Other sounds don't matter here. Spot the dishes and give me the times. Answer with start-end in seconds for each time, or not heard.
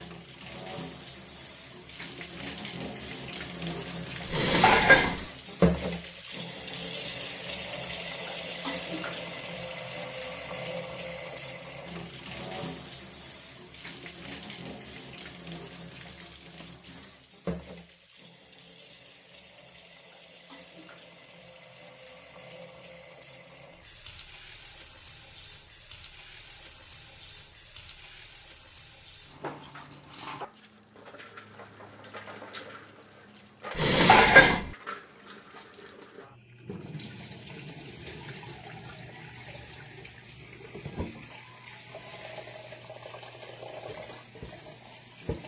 4.3-5.2, 33.8-34.7.